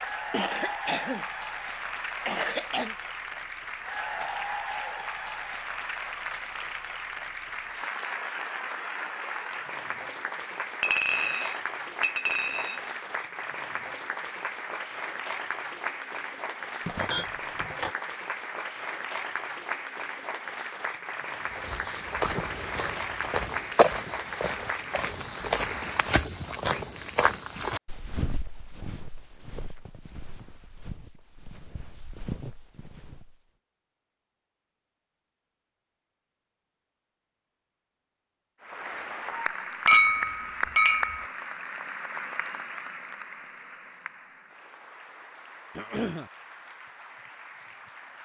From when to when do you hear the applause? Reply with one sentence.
You can hear the applause from 0.0 to 26.2 s and from 38.6 to 48.2 s.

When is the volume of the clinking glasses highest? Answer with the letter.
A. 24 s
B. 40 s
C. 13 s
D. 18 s
B.